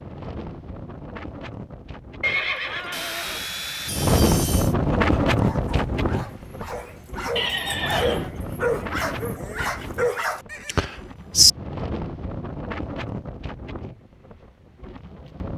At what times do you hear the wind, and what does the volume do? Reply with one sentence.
The wind can be heard from 0.0 to 15.5 s, getting louder then quieter.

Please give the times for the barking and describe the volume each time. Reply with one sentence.
The barking can be heard from 4.9 to 10.4 s, getting louder.